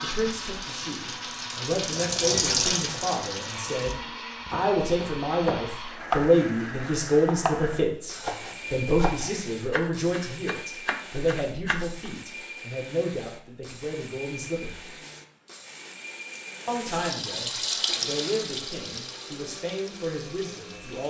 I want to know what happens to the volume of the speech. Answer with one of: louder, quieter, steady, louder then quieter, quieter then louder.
louder then quieter.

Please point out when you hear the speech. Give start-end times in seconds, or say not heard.
0.0-14.9, 16.6-21.0.